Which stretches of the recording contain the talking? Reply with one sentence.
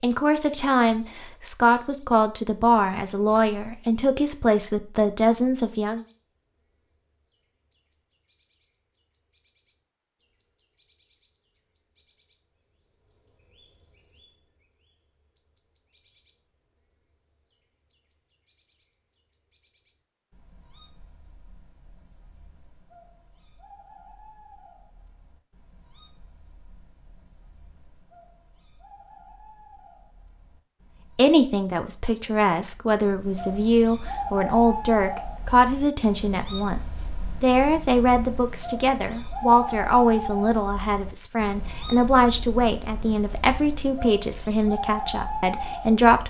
The talking can be heard from 0.0 to 6.0 s and from 31.1 to 46.2 s.